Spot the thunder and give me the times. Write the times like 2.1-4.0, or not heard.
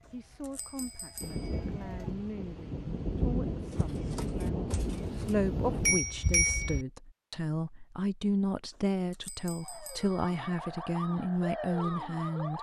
1.2-6.0.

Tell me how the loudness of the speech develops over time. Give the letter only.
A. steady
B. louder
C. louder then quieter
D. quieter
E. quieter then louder
B.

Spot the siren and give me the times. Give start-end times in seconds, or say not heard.
0.0-2.1, 9.6-12.5.